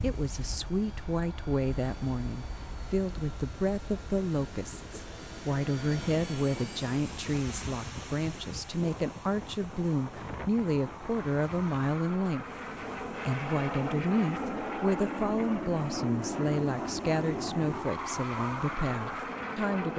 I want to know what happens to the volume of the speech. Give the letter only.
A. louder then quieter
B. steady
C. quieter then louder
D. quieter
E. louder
B.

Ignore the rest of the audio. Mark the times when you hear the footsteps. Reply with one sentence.
You can't hear the footsteps here.